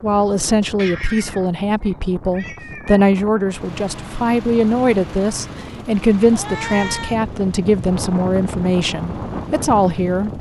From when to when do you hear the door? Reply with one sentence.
You can't hear the door here.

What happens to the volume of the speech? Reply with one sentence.
The loudness of the speech stays about the same.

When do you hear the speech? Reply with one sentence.
You can hear the speech from 0.0 to 10.3 s.